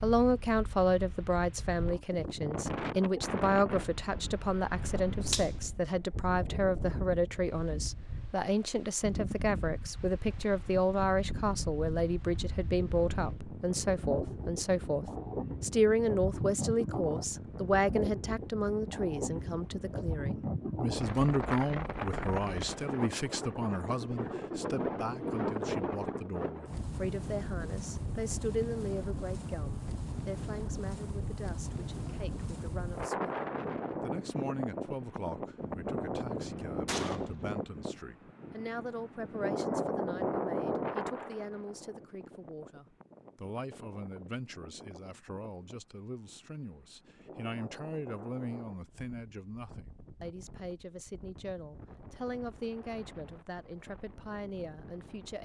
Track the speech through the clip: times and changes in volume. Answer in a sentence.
The speech can be heard from 0.0 to 55.4 s, getting quieter.